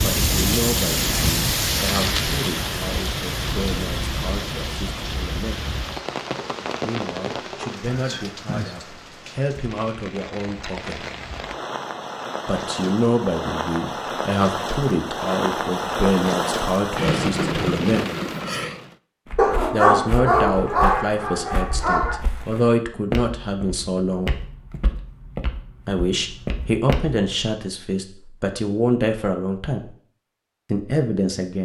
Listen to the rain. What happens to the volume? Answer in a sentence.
The loudness of the rain goes down, then up.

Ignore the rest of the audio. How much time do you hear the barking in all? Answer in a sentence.
You can hear the barking for 3 seconds altogether.